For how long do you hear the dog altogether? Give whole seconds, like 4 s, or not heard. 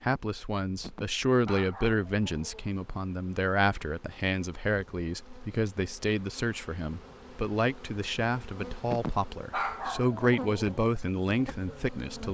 4 s.